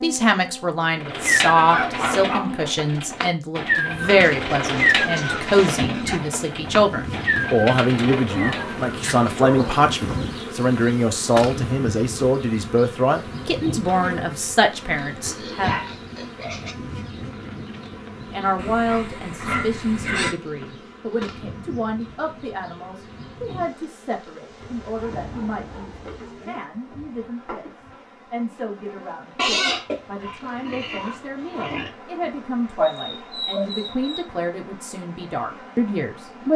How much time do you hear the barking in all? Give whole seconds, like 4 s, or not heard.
8 s.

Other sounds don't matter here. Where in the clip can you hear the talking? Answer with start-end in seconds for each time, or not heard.
0.0-15.7, 18.3-36.5.